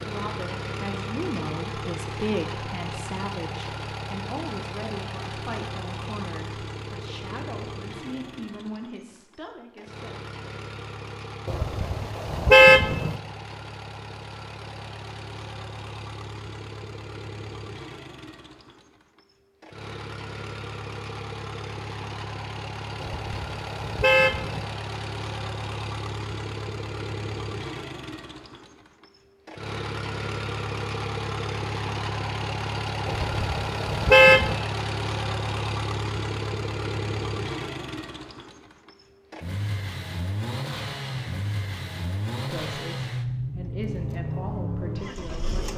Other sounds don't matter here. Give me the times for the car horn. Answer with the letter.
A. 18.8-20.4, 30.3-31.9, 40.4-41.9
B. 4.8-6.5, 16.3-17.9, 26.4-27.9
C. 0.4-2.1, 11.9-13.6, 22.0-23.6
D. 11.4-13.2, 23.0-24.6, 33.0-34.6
D.